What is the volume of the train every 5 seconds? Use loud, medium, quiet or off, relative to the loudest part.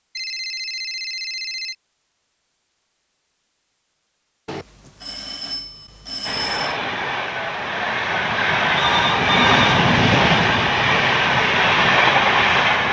off, loud, loud.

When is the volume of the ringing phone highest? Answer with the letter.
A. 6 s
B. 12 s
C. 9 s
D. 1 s
C.